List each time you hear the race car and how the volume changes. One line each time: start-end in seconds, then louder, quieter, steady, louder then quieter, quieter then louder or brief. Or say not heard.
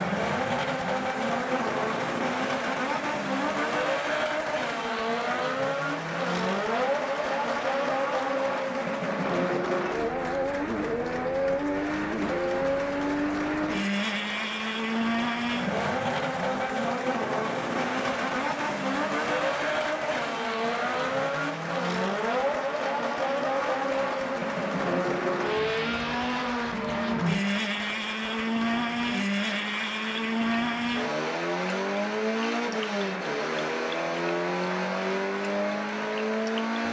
0.0-36.8 steady.